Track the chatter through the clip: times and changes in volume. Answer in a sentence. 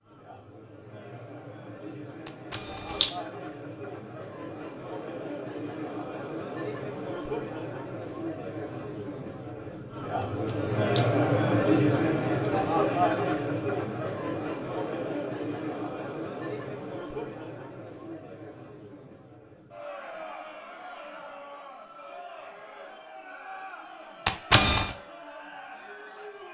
You can hear the chatter from 0.0 to 26.5 s, getting louder then quieter.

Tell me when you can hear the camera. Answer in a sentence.
The camera can be heard from 2.2 to 3.1 s, from 10.2 to 11.1 s and from 24.2 to 24.9 s.